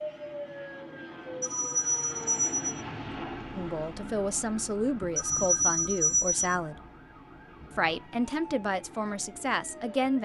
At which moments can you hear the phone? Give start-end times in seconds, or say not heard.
1.4-2.8, 5.2-6.5.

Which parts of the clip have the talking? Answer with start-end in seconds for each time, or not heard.
3.5-6.8, 7.8-10.2.